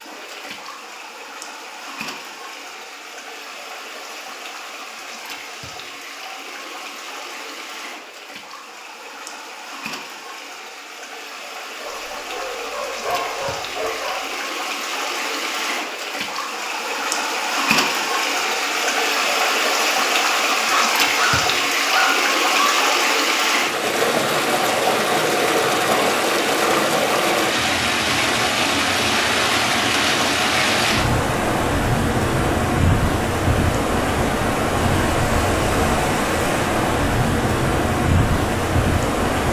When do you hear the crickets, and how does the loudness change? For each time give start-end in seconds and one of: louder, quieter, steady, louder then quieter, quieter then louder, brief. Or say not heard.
not heard.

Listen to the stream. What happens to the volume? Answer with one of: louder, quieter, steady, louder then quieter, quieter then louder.
louder.